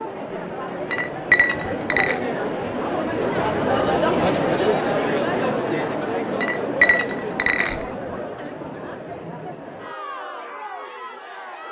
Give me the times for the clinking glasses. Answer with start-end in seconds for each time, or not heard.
0.9-2.2, 6.4-7.8.